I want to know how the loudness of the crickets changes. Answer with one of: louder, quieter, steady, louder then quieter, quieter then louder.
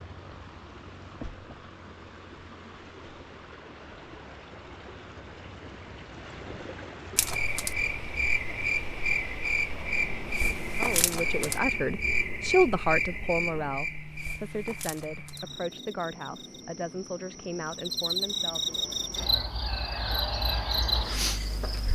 quieter then louder.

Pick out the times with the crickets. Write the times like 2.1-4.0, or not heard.
7.2-21.8.